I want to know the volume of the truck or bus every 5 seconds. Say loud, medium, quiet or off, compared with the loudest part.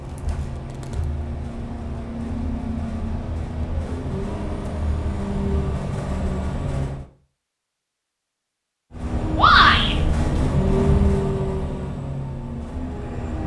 medium, loud, loud.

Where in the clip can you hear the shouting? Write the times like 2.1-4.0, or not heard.
9.3-9.9.